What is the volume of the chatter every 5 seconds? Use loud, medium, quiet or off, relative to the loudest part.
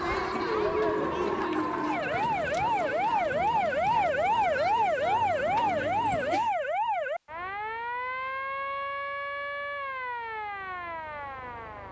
loud, loud, off.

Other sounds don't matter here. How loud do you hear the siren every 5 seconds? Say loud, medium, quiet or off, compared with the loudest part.
loud, loud, medium.